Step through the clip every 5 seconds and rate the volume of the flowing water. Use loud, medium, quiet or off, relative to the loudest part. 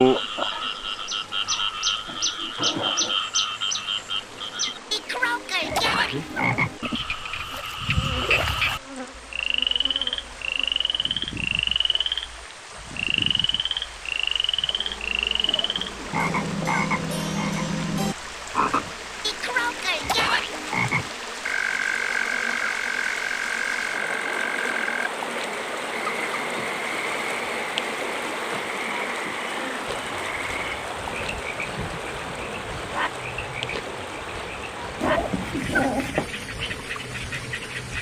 quiet, quiet, medium, medium, loud, loud, loud, medium.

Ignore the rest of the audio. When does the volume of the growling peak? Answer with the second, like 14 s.
36 s.